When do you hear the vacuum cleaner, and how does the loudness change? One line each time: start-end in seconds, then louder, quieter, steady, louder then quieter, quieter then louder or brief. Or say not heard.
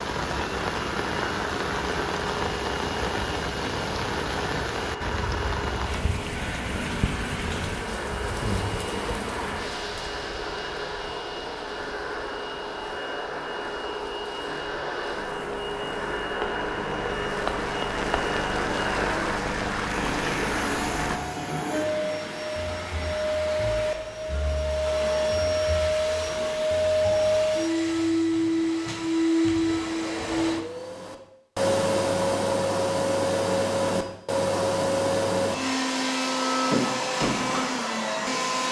0.2-38.6 louder.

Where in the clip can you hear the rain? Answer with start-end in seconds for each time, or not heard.
0.0-21.2.